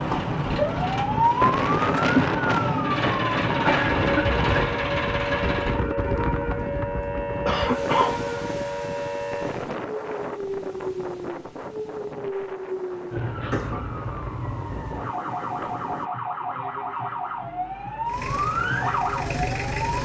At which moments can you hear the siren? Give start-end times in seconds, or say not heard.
0.0-19.9.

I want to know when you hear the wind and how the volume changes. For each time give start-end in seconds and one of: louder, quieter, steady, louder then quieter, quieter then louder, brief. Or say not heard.
0.0-16.1 quieter.